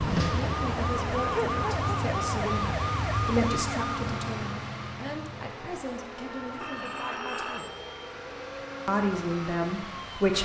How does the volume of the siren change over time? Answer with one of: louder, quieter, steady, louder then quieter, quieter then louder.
quieter.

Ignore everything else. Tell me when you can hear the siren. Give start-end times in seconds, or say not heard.
0.0-10.3.